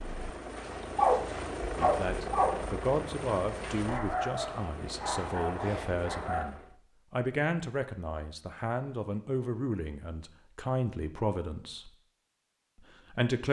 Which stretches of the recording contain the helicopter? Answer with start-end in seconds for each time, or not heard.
0.0-6.8.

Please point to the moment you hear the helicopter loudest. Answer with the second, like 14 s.
2 s.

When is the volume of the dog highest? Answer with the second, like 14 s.
1 s.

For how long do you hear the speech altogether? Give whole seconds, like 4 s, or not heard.
11 s.